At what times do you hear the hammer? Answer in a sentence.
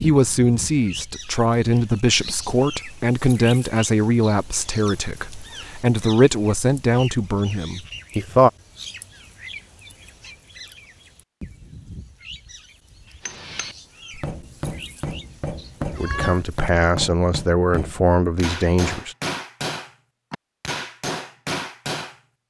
You can hear the hammer from 13.2 to 22.2 s.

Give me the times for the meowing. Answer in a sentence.
The meowing can be heard from 15.8 to 16.4 s.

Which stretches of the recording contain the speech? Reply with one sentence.
The speech can be heard from 0.0 to 8.5 s and from 15.9 to 19.1 s.